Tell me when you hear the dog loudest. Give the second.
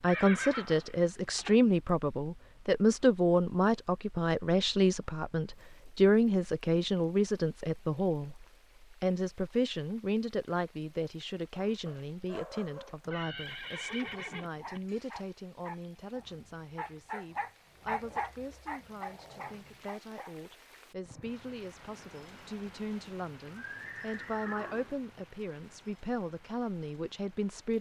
18 s.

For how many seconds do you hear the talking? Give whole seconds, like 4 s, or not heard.
28 s.